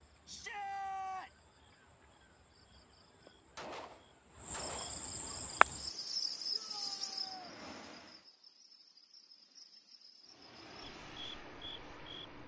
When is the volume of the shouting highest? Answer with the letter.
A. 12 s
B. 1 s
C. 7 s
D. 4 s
B.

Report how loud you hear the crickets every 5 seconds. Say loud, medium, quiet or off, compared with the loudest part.
quiet, loud, quiet.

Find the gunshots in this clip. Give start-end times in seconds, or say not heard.
3.5-5.0.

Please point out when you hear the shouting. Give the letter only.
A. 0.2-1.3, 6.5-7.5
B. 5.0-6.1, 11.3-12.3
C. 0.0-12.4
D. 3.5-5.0
A.